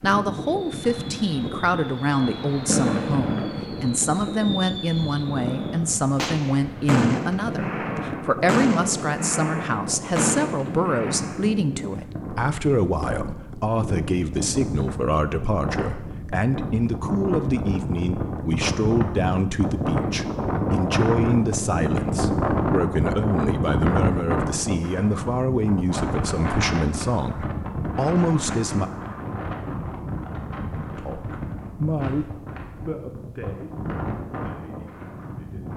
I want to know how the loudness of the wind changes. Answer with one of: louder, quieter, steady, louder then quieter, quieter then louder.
louder then quieter.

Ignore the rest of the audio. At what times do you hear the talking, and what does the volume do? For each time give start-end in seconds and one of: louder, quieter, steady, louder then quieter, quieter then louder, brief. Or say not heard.
0.0-28.9 steady
30.7-35.7 quieter.